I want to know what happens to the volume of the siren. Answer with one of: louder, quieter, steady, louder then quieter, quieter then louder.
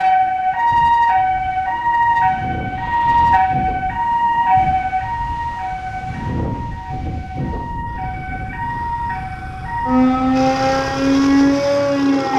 quieter then louder.